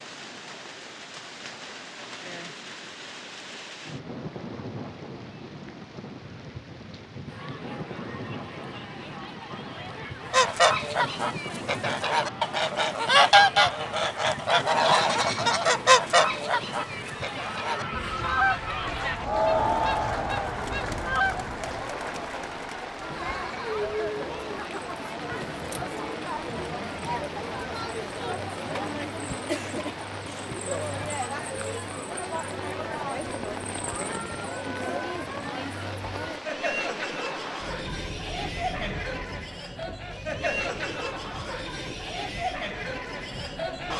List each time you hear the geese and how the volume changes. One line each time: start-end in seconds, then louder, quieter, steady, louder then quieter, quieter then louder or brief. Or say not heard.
10.3-21.5 louder then quieter.